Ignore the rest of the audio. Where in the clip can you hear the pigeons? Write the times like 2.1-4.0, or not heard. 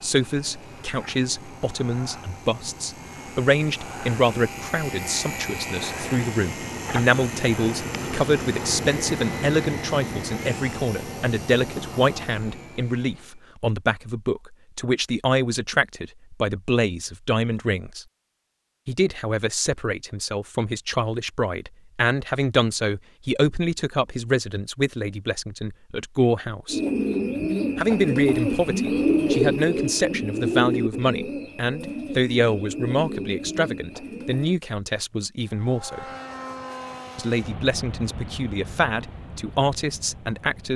26.6-34.5.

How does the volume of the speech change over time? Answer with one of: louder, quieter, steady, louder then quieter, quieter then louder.
steady.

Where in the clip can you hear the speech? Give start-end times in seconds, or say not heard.
0.0-18.1, 18.9-26.8, 27.8-36.0, 37.1-40.7.